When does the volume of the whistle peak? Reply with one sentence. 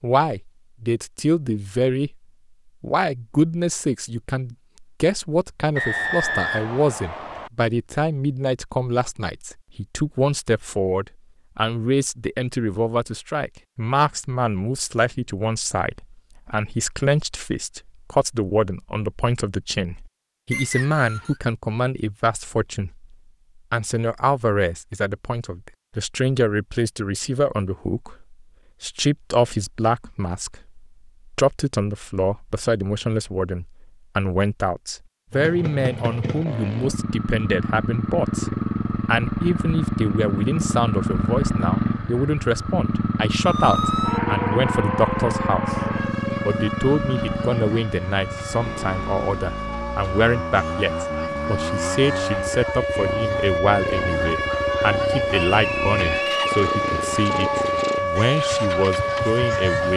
The volume of the whistle peaks at 6 seconds.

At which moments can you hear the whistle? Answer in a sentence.
The whistle can be heard from 5.8 to 7.5 s, from 20.5 to 21.4 s and from 55.3 to 56.5 s.